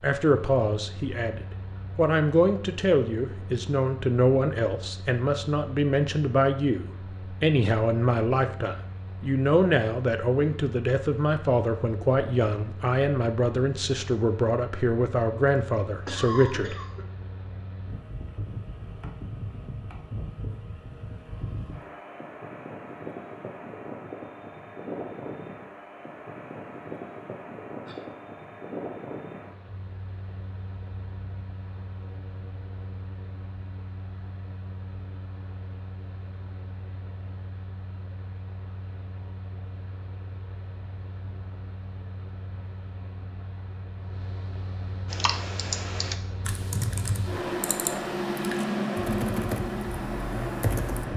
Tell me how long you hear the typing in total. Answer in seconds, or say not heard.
6 s.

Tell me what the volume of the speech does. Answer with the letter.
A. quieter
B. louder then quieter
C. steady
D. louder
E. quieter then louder
C.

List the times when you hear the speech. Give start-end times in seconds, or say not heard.
0.0-16.8.